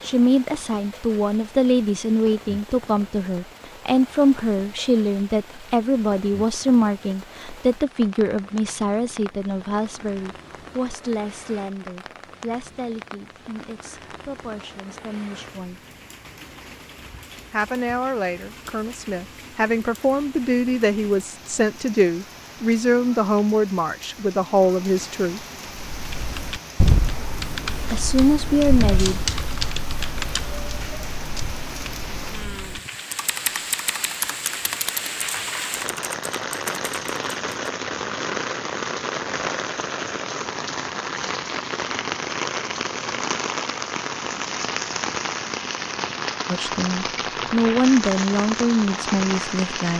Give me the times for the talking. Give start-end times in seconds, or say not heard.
0.0-15.8, 17.5-25.4, 27.9-29.2, 46.5-49.9.